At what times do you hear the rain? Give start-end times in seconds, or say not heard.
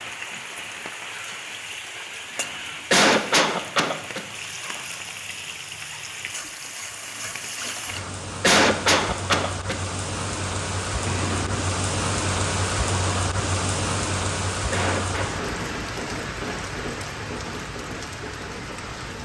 0.0-19.2.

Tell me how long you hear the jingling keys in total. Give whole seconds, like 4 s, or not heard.
2 s.